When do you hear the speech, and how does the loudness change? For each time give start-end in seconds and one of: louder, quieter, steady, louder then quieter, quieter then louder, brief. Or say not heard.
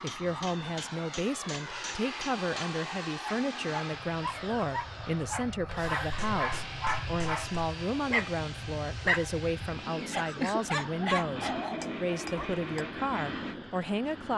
0.0-14.3 steady.